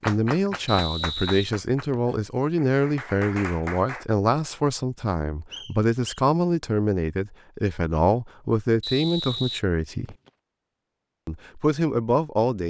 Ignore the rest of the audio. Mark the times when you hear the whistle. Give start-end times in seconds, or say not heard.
0.7-2.1, 5.5-6.2, 8.8-10.3.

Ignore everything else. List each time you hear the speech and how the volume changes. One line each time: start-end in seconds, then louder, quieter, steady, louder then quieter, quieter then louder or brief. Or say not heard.
0.1-10.2 steady
11.2-12.6 brief.